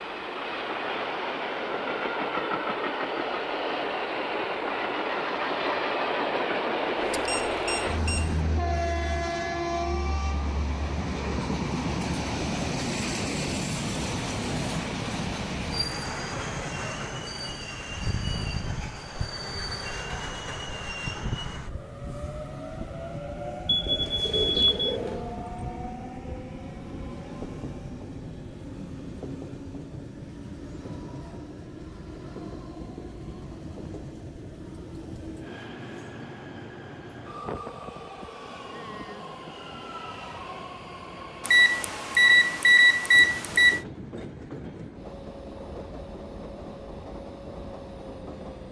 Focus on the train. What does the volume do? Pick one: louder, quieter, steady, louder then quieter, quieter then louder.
quieter.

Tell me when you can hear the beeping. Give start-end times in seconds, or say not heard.
7.0-8.4, 23.6-24.8, 41.5-43.8.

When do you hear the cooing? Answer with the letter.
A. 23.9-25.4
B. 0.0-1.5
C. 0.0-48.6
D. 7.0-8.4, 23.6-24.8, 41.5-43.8
A.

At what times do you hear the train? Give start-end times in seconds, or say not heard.
0.0-48.6.